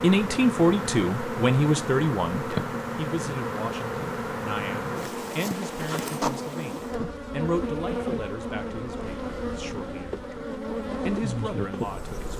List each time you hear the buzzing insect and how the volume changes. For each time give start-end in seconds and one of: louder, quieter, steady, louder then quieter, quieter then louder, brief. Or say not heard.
0.0-12.3 steady.